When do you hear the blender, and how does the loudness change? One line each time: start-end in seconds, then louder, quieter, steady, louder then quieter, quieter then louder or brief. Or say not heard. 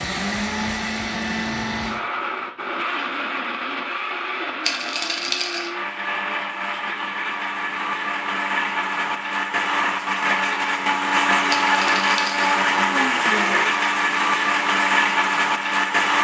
0.0-16.1 louder.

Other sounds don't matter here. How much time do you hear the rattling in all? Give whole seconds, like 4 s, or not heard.
2 s.